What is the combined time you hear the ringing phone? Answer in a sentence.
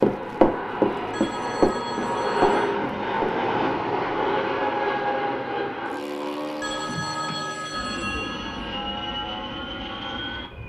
The ringing phone can be heard for 4 seconds in total.